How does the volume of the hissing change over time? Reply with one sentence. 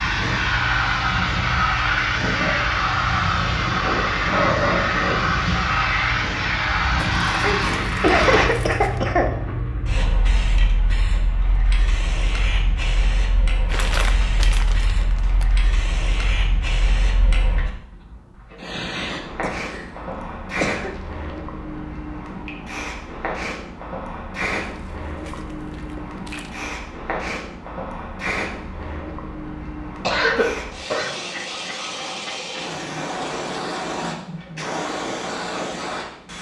The loudness of the hissing goes down.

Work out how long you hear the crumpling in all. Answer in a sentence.
The crumpling can be heard for 6 seconds in total.